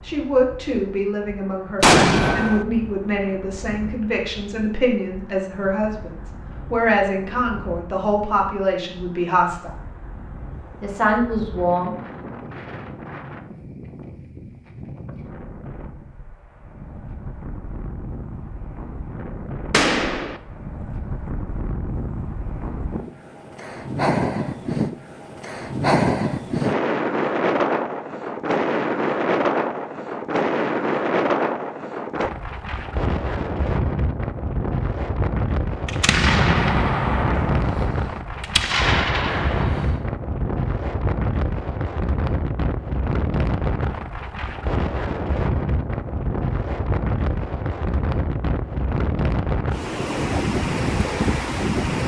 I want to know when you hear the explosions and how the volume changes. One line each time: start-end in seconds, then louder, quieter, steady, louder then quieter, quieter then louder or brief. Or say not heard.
1.8-2.6 brief
19.7-20.4 brief
35.9-40.0 quieter then louder.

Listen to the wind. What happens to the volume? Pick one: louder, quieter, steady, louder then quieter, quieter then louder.
louder.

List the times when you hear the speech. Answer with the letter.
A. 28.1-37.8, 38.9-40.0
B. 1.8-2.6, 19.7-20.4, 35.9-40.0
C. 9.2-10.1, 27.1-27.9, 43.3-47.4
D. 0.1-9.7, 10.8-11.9
D.